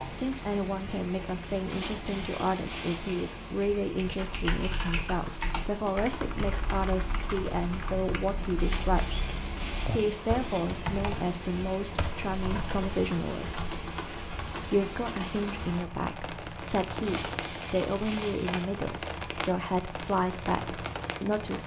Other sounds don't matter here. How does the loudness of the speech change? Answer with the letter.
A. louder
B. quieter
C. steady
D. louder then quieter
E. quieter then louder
C.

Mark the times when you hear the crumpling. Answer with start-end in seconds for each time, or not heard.
1.6-3.4, 8.6-10.6, 17.0-18.9.